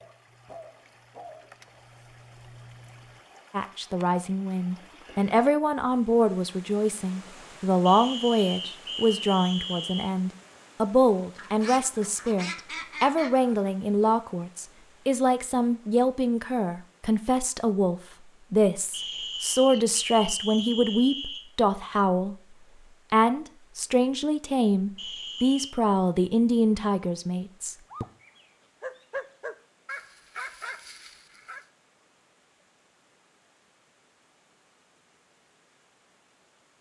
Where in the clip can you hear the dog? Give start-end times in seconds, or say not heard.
0.0-3.2, 27.9-31.6.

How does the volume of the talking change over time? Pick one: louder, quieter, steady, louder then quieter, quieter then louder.
steady.